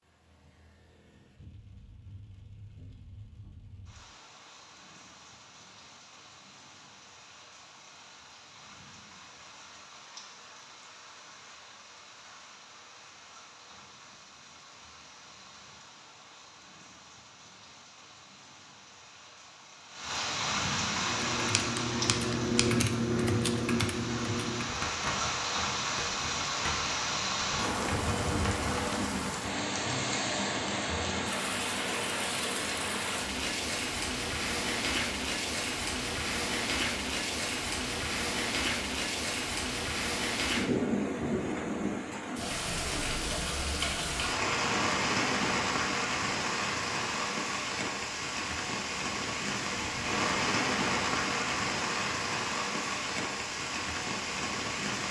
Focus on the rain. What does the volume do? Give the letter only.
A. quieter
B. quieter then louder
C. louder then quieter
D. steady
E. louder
E.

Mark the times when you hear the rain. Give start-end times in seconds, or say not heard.
0.0-55.0.